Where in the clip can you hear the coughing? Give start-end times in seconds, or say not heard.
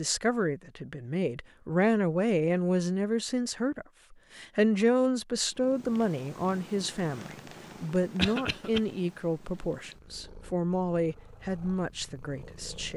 8.2-8.8.